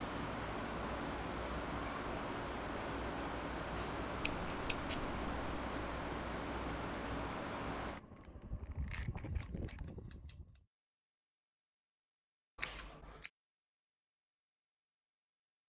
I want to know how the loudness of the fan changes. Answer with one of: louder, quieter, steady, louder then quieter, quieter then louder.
quieter.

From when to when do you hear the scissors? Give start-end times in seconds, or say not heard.
4.2-5.6, 12.6-13.3.